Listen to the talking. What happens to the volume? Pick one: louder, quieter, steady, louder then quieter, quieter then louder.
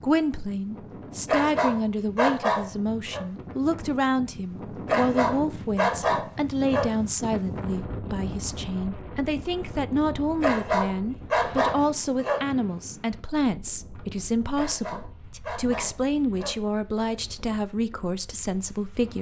steady.